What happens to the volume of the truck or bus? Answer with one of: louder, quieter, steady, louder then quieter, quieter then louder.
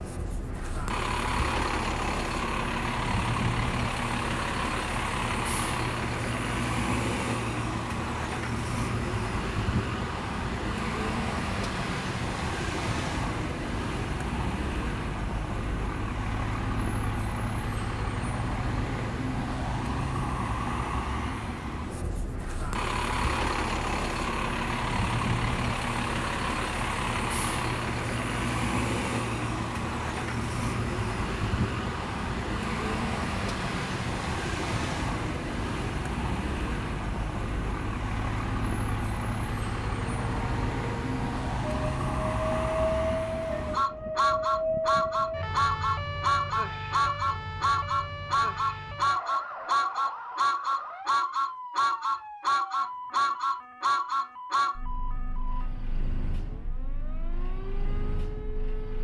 steady.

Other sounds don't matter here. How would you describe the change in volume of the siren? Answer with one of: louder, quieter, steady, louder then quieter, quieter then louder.
quieter.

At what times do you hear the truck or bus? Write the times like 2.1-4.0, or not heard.
0.0-58.9.